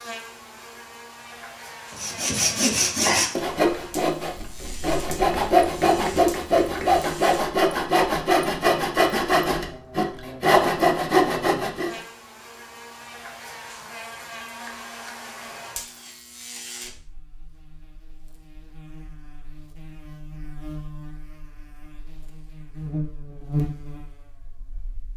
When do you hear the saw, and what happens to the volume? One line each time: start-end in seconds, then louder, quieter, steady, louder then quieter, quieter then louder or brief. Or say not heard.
1.9-12.0 steady.